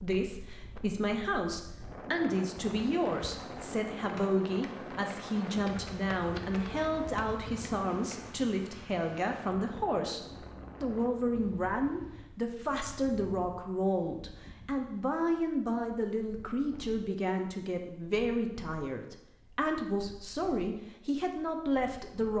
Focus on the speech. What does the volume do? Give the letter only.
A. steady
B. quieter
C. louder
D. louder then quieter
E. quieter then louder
A.